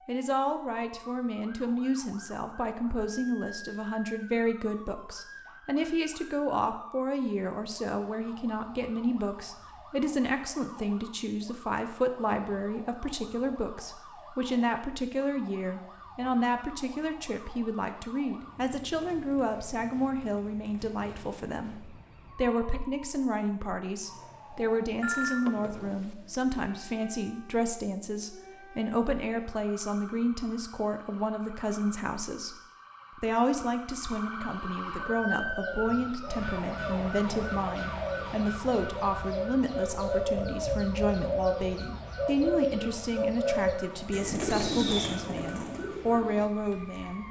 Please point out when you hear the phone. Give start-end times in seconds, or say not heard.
25.0-26.4.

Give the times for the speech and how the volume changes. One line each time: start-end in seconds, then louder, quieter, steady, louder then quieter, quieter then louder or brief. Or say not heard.
0.1-32.5 steady
33.1-47.2 steady.